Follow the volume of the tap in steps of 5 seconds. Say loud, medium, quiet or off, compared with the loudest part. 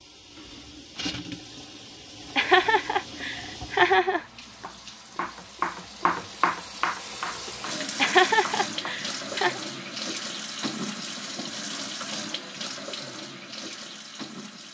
medium, loud, loud.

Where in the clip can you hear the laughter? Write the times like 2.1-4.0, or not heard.
2.4-4.2, 8.0-9.6.